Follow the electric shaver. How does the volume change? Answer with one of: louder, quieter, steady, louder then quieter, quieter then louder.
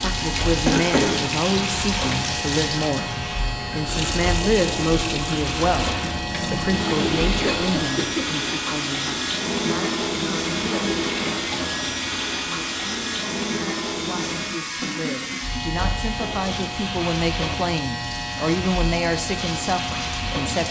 steady.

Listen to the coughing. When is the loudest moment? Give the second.
1 s.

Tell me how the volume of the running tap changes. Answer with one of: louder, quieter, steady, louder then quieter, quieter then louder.
quieter.